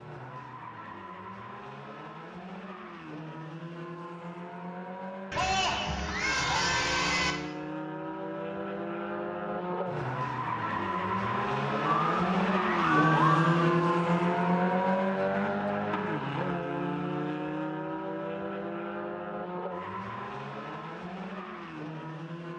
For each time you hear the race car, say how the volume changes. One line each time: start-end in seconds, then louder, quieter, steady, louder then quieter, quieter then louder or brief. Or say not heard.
0.0-22.5 louder then quieter.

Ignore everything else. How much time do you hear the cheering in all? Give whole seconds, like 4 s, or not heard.
4 s.